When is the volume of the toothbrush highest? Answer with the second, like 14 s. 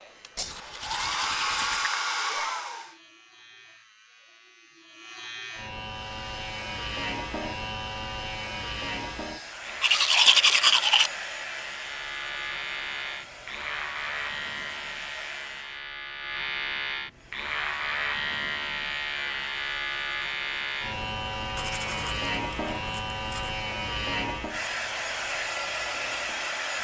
10 s.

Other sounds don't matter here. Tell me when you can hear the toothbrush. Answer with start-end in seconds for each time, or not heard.
0.3-1.9, 9.8-11.1, 21.6-23.6.